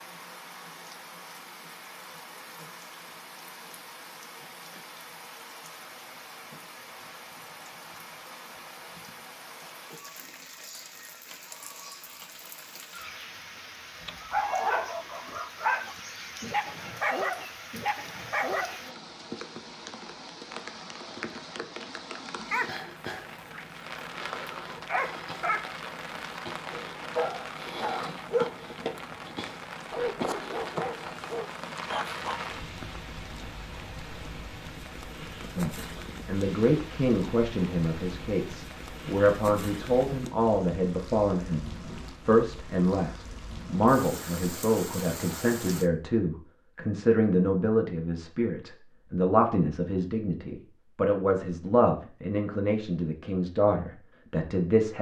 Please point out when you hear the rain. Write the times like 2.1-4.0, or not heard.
0.0-45.9.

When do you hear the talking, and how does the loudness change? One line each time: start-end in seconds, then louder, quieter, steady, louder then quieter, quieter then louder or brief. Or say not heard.
35.5-54.9 steady.